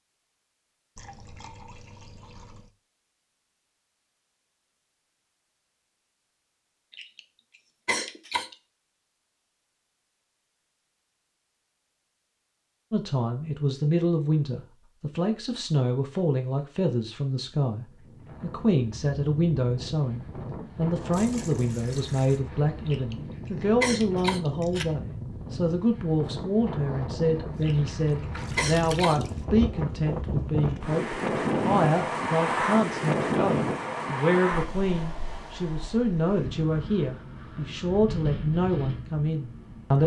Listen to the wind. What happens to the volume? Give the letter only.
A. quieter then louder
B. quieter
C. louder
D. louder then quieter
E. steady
D.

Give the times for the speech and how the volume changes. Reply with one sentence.
You can hear the speech from 12.9 to 40.0 s, at a steady volume.